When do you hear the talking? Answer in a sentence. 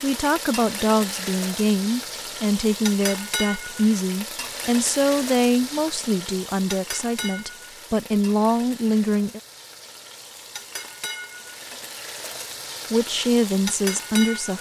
The talking can be heard from 0.0 to 9.4 s and from 12.9 to 14.5 s.